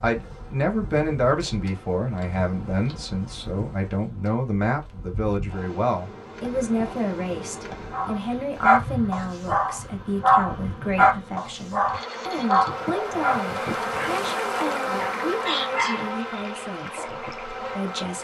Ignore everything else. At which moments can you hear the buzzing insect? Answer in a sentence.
You can hear the buzzing insect from 0.0 to 18.1 s.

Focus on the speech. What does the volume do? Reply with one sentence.
The volume of the speech goes down.